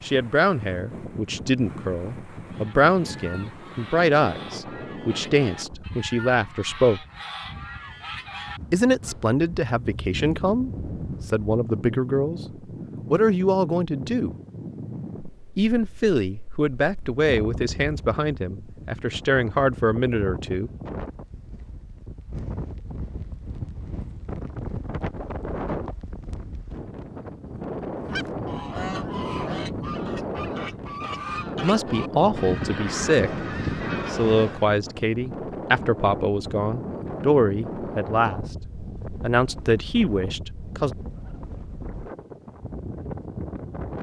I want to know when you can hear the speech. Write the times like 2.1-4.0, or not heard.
0.0-7.0, 8.7-12.4, 13.1-14.3, 15.6-20.7, 31.6-33.5, 34.1-40.9.